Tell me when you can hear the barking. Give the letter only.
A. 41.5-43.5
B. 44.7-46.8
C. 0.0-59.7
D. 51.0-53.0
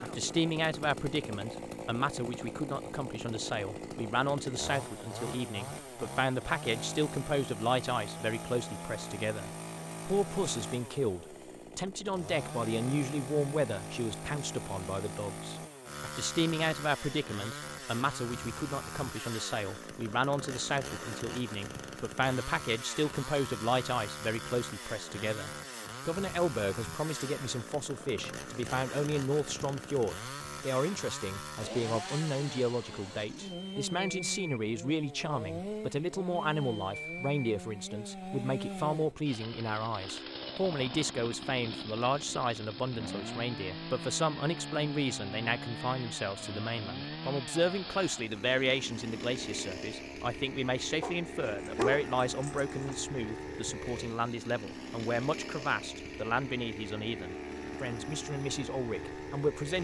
D.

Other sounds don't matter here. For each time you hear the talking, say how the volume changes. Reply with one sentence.
You can hear the talking from 0.0 to 59.7 s, at a steady volume.